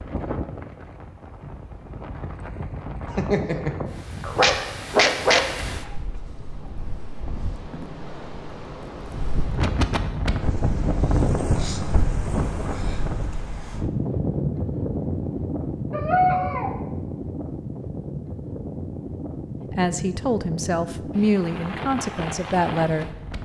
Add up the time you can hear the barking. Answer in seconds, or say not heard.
3 s.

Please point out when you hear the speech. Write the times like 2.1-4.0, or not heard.
19.7-23.2.